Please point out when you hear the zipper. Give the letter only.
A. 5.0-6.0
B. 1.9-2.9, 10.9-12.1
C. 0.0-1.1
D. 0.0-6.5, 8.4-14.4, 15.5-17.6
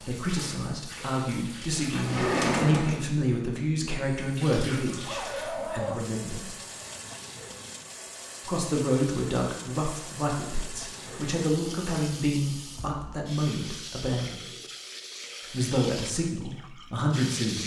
A.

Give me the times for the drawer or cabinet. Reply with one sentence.
You can hear the drawer or cabinet from 1.9 to 2.9 s and from 10.9 to 12.1 s.